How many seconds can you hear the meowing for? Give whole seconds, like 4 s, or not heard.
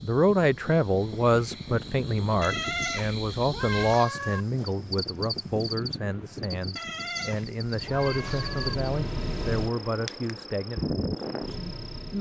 4 s.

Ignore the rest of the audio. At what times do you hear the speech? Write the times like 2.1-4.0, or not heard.
0.0-12.1.